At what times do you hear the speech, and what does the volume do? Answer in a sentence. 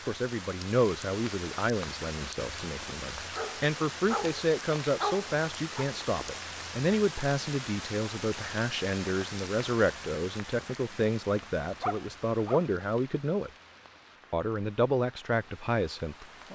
The speech can be heard from 0.1 to 13.5 s, at a steady volume; and briefly from 14.3 to 16.2 s.